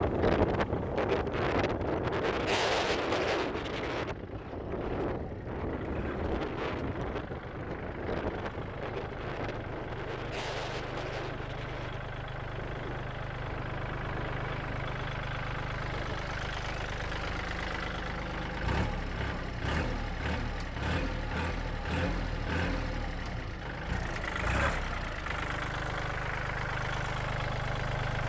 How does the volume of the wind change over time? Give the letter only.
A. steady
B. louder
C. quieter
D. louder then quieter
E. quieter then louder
C.